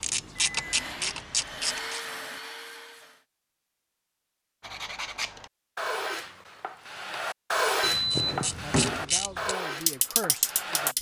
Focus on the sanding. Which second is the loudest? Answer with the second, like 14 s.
8 s.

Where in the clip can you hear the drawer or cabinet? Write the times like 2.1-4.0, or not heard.
8.2-9.1.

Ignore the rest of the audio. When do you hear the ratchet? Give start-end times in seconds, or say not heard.
0.0-2.0, 8.1-10.9.